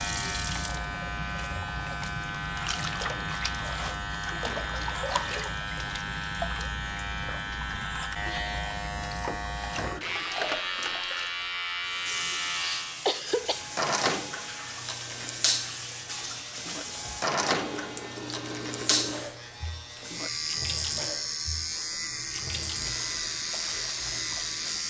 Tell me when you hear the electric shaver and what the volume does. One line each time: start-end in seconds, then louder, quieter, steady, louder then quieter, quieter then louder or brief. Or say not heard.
0.0-24.8 steady.